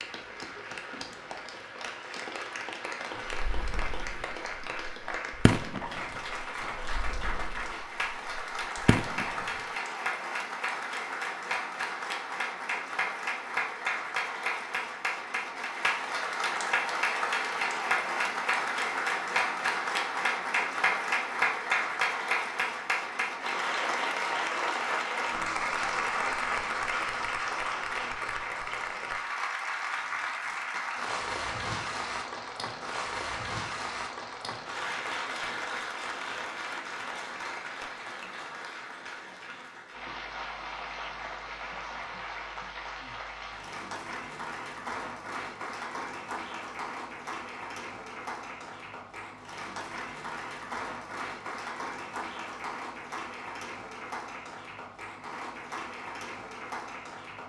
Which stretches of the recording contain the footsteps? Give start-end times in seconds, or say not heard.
not heard.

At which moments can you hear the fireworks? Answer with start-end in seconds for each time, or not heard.
3.2-9.7.